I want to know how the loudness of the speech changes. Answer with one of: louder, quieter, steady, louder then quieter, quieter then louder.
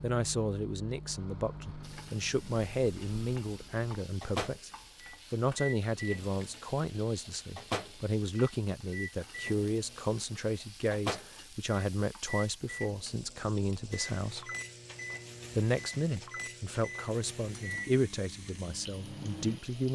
steady.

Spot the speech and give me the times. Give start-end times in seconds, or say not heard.
0.0-4.7, 5.3-14.5, 15.6-19.9.